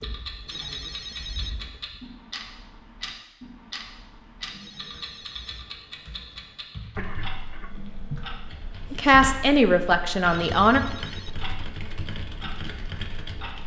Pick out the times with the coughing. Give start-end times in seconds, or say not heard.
7.0-8.2.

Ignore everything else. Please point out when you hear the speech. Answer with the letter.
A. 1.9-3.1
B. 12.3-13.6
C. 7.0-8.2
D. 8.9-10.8
D.